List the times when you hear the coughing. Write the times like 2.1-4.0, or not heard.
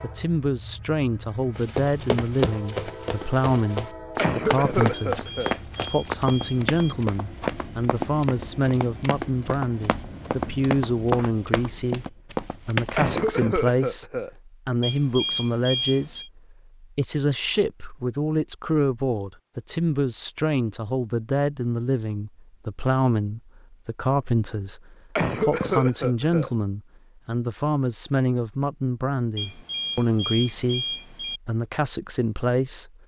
4.2-5.5, 12.9-14.3, 25.1-26.5.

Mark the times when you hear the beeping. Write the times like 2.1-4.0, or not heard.
4.9-7.0, 14.8-16.3, 29.4-31.4.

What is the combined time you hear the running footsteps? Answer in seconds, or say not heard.
12 s.